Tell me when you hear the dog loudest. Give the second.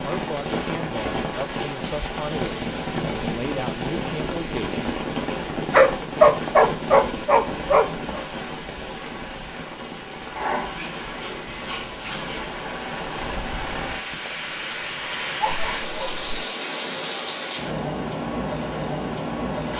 6 s.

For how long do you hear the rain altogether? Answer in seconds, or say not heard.
20 s.